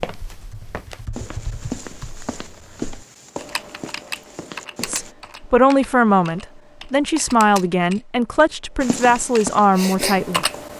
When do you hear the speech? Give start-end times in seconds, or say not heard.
4.8-10.4.